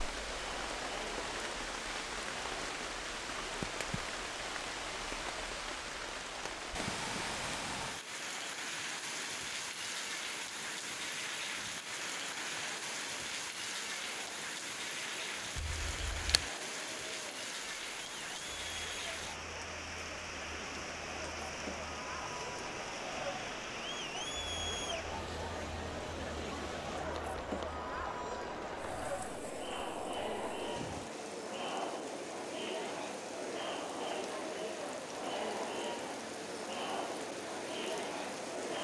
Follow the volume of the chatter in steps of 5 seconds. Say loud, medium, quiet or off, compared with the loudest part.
medium, quiet, quiet, medium, loud, loud, loud, loud.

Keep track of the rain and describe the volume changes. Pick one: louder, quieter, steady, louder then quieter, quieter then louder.
quieter.